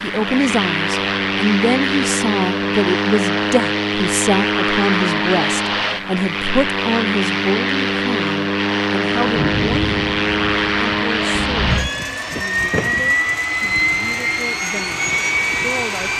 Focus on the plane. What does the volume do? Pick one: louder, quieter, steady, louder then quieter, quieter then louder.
steady.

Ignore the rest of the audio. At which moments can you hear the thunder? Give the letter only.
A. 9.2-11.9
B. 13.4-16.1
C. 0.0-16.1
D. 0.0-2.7
A.